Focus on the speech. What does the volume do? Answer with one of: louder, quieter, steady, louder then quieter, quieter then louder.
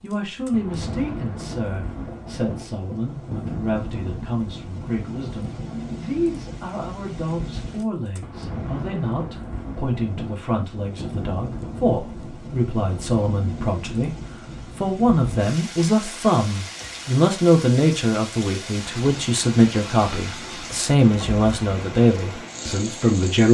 louder.